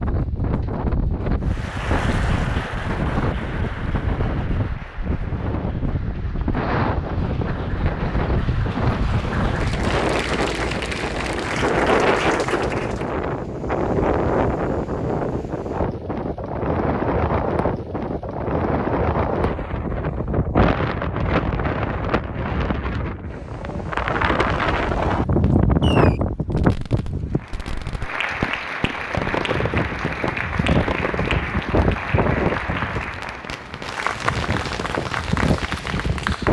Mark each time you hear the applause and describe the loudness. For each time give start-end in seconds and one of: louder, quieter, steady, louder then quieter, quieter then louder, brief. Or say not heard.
1.4-13.2 quieter then louder
27.3-36.4 steady.